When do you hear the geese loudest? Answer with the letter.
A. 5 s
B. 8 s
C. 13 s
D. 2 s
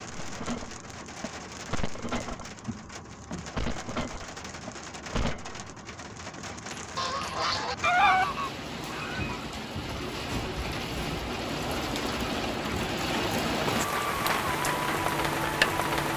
B.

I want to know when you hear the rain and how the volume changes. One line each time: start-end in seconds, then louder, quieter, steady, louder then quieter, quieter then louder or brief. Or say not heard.
0.0-16.1 louder.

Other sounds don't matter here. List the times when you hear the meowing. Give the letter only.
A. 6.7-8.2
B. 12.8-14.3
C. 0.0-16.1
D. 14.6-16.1
A.